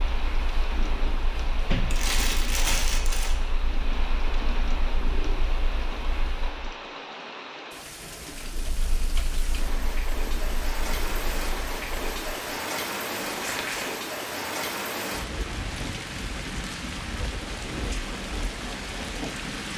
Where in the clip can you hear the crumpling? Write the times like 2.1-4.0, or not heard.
1.7-3.4, 13.2-13.9.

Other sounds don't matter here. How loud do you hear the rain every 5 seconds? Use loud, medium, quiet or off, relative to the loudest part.
medium, medium, loud, loud.